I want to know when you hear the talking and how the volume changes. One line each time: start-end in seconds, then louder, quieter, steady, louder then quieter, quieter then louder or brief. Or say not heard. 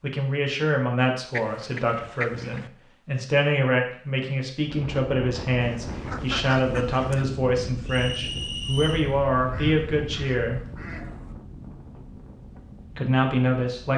0.0-10.6 steady
12.9-13.9 brief.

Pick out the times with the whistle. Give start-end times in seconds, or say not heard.
7.8-9.1.